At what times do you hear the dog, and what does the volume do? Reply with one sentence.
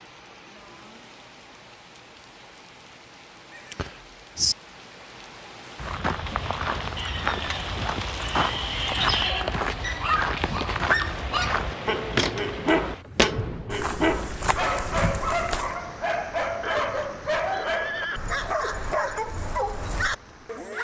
You can hear the dog from 9.8 to 20.7 s, at a steady volume.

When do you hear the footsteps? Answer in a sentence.
You can hear the footsteps from 5.8 to 15.8 s.